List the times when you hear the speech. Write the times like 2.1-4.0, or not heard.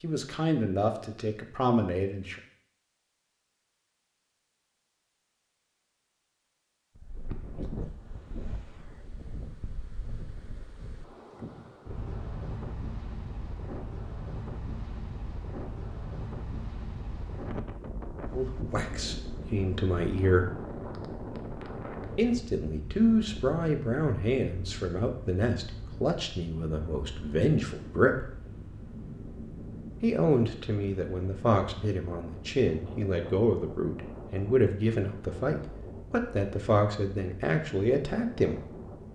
0.0-2.4, 18.4-20.5, 22.1-28.3, 30.0-38.6.